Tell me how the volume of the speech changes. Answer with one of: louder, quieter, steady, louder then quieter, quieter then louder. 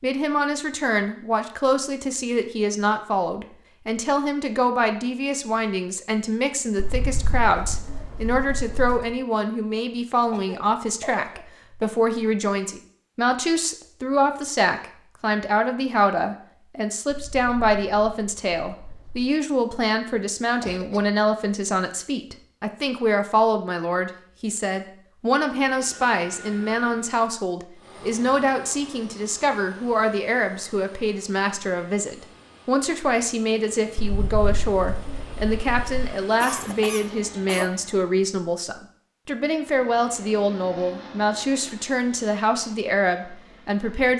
steady.